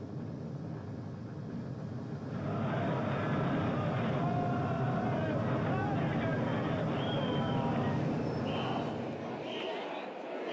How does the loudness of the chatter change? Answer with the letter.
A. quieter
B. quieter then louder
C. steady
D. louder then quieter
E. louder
C.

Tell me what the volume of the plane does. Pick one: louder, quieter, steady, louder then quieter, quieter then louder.
louder.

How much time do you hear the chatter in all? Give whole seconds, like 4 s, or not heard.
8 s.